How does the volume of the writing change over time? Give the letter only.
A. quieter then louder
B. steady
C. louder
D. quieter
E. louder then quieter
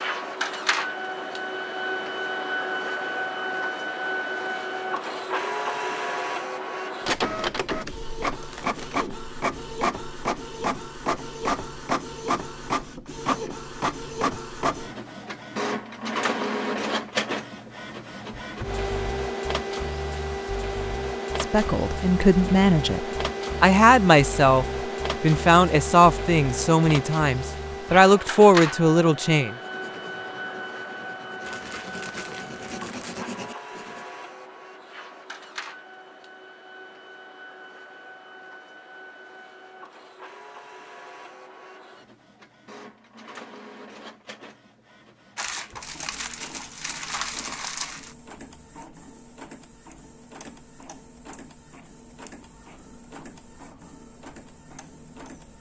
C.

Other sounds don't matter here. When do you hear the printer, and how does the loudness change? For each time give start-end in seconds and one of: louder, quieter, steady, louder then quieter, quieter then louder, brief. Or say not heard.
0.0-55.5 quieter.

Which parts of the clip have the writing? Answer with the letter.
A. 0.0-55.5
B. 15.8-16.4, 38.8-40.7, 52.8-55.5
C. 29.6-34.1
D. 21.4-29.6
C.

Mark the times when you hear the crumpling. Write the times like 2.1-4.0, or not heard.
8.4-9.1, 31.4-33.3, 45.4-48.1.